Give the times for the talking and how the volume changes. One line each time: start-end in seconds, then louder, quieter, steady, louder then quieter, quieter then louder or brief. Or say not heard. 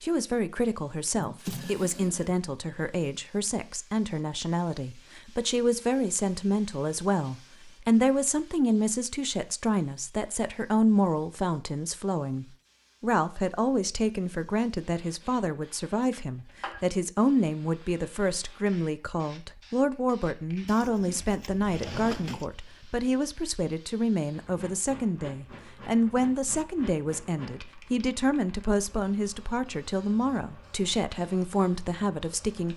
0.0-32.7 steady.